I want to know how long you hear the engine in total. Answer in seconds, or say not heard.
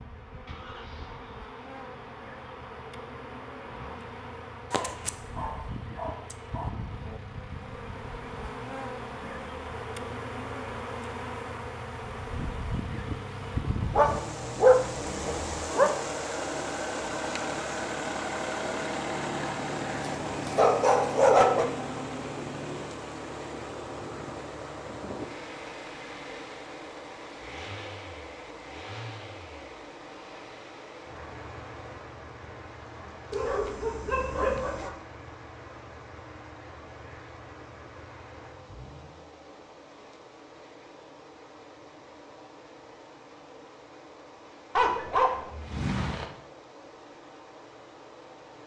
39 s.